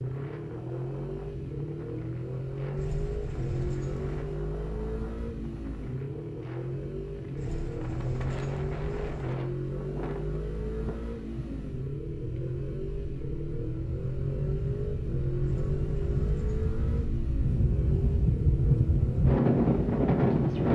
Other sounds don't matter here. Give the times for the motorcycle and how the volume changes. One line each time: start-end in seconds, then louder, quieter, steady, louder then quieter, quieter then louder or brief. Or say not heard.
0.0-20.7 steady.